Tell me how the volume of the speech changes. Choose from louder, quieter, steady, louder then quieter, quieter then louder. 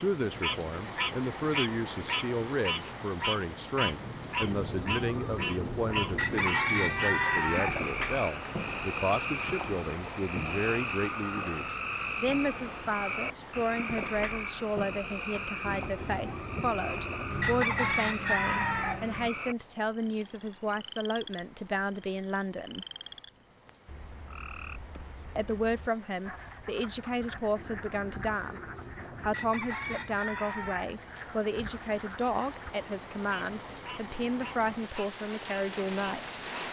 steady.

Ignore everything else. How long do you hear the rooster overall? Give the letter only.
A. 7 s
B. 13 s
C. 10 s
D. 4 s
C.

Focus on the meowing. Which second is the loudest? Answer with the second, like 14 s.
7 s.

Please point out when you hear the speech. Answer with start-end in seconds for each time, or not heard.
0.0-22.9, 25.4-36.4.